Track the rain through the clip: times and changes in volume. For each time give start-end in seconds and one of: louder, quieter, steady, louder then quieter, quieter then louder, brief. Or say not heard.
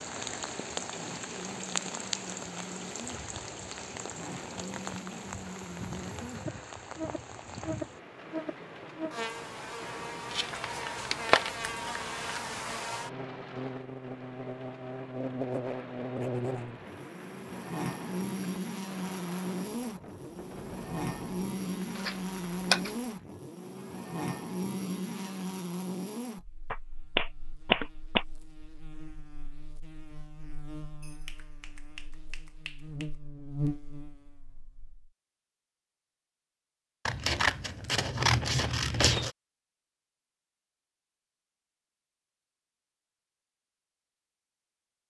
0.0-23.3 quieter.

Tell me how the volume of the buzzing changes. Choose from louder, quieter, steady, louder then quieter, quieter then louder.
louder then quieter.